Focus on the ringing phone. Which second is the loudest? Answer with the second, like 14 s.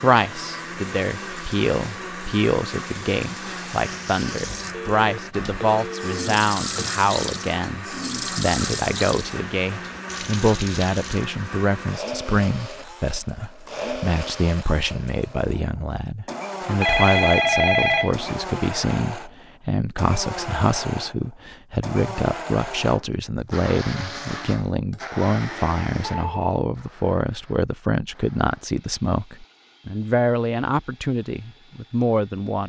18 s.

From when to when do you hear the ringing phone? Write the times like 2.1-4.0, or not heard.
4.7-6.8, 16.6-18.3, 26.1-26.7.